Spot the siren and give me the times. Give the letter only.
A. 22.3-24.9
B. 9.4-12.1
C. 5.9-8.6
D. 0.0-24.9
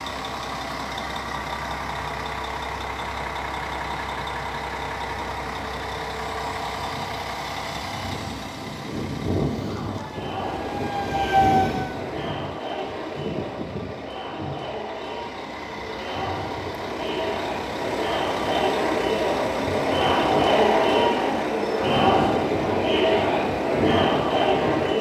B.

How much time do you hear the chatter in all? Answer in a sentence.
You can hear the chatter for 15 seconds altogether.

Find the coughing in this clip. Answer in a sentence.
The coughing can't be heard in this clip.